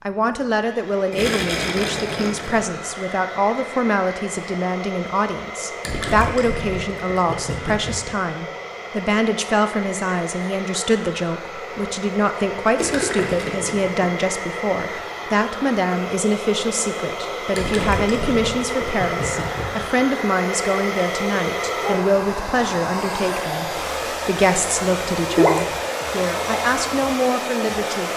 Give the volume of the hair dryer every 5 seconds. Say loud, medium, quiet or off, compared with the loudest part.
medium, medium, medium, loud, loud, loud.